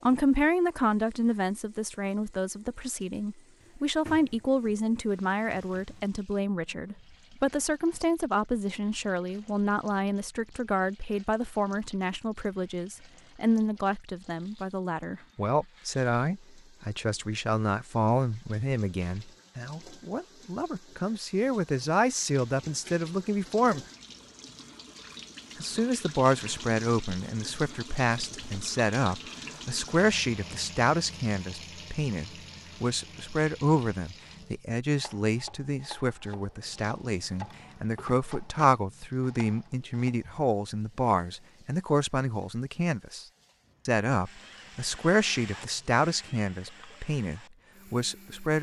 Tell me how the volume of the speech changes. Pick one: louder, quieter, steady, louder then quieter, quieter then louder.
steady.